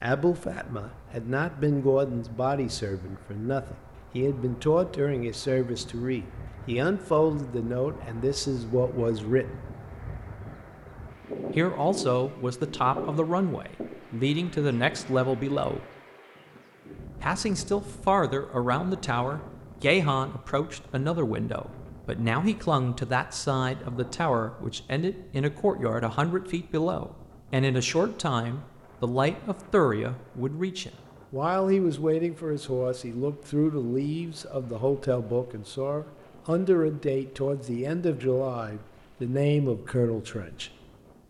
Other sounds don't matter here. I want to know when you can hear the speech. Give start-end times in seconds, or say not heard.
0.0-9.5, 11.6-15.8, 17.2-40.7.